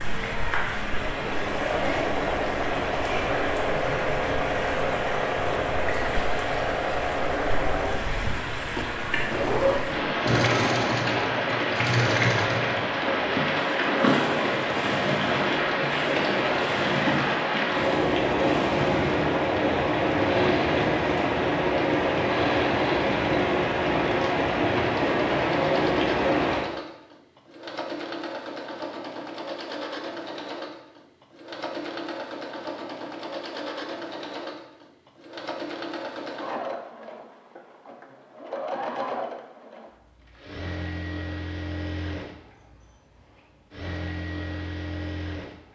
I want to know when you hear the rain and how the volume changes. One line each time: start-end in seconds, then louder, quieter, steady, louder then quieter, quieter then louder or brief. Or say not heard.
0.0-26.6 louder.